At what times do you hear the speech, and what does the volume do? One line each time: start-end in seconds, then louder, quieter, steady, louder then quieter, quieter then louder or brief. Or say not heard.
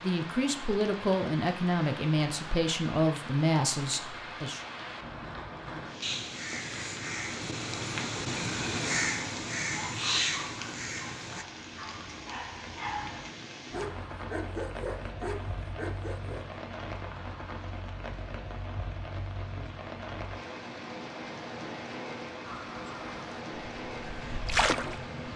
0.0-4.7 steady.